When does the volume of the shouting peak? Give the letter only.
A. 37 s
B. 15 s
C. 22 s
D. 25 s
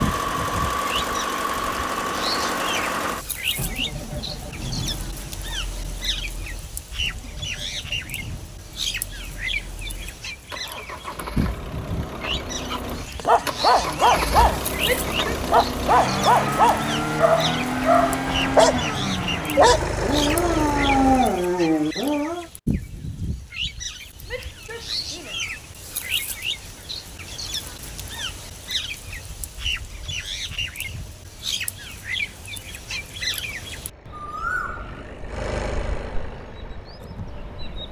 B.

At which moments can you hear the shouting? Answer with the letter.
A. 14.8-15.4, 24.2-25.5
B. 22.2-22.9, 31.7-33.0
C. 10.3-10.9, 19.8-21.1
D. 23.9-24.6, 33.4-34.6
A.